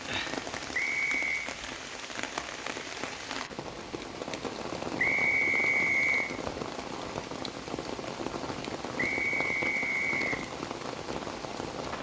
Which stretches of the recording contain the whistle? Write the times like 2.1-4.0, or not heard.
0.7-1.4, 5.0-6.3, 8.9-10.4.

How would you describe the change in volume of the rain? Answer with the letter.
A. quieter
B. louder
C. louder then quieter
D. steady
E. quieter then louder
D.